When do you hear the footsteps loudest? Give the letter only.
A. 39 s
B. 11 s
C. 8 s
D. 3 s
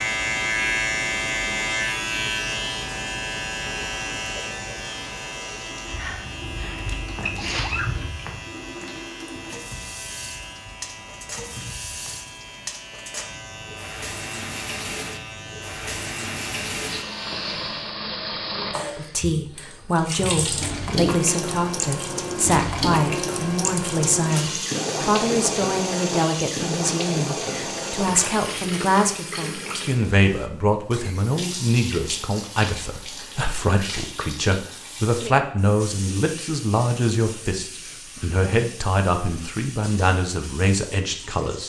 C.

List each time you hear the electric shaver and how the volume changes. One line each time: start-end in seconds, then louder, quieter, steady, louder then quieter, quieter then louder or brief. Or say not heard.
0.0-18.0 quieter.